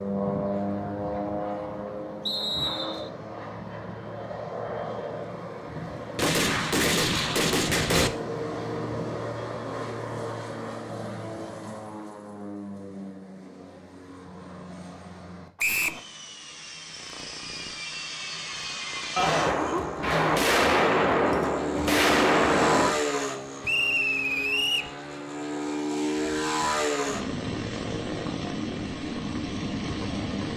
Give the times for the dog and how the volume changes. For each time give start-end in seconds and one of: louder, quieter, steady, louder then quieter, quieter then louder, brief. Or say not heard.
not heard.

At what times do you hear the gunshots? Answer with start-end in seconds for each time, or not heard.
6.2-8.1, 19.1-22.9.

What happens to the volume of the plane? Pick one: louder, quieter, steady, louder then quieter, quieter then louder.
quieter then louder.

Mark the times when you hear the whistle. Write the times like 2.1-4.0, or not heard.
2.2-3.1, 15.6-16.0, 23.6-24.9.